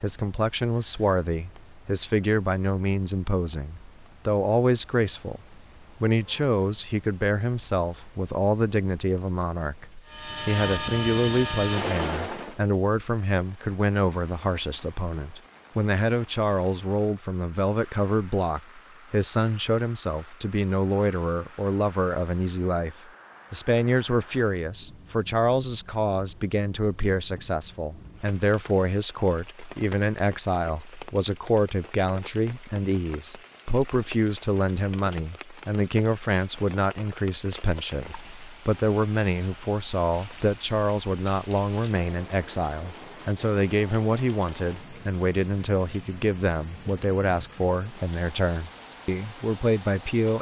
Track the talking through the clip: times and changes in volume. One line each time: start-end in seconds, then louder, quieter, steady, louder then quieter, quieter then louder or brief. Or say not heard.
0.0-50.3 steady.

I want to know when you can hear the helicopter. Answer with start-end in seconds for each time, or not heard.
10.1-12.6.